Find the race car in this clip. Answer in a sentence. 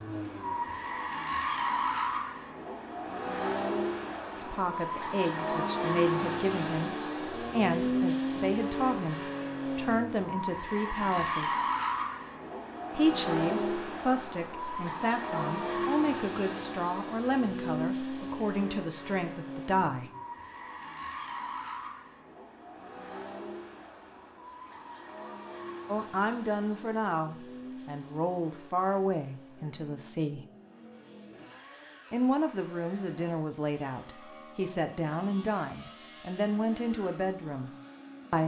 You can hear the race car from 0.0 to 38.4 s.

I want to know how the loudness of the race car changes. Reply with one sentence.
The volume of the race car goes down.